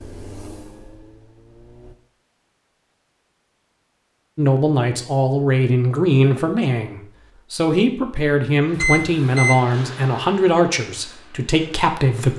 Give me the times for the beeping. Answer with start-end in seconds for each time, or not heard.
8.8-9.6.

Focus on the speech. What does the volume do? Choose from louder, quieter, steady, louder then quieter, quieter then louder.
steady.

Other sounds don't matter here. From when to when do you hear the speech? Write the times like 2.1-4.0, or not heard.
4.3-12.3.